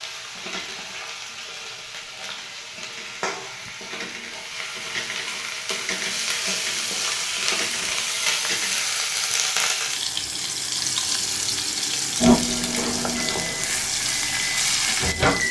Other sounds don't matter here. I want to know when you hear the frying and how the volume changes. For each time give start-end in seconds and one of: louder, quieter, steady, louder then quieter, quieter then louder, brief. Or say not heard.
0.0-15.4 louder.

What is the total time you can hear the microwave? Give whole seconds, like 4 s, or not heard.
3 s.